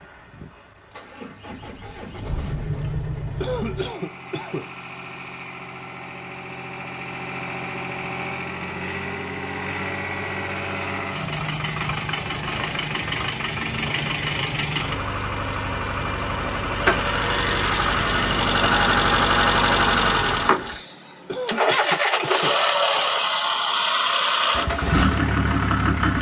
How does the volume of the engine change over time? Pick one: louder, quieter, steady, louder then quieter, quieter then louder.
louder.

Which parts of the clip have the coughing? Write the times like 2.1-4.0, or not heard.
3.4-4.7, 21.2-23.0.